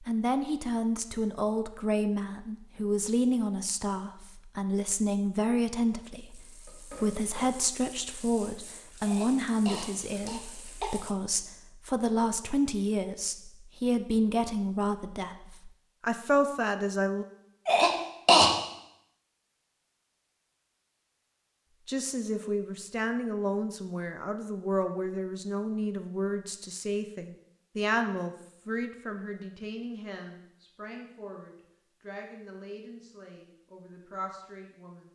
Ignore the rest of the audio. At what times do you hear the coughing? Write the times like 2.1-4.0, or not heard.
9.0-10.9, 17.6-18.5.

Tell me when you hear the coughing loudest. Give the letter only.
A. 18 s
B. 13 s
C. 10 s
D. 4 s
A.